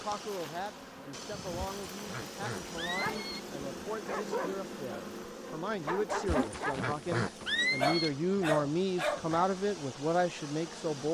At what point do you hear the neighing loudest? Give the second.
8 s.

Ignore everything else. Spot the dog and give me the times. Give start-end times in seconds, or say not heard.
3.0-7.0, 7.8-9.2.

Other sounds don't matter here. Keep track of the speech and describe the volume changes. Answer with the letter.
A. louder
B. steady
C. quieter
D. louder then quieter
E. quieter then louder
A.